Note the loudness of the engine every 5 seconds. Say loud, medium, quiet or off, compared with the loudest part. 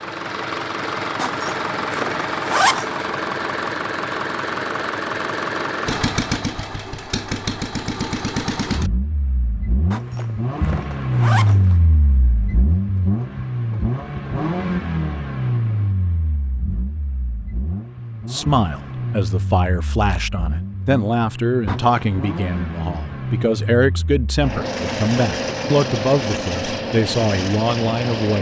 loud, loud, loud, medium, medium, loud.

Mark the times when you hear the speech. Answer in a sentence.
You can hear the speech from 18.3 to 28.3 s.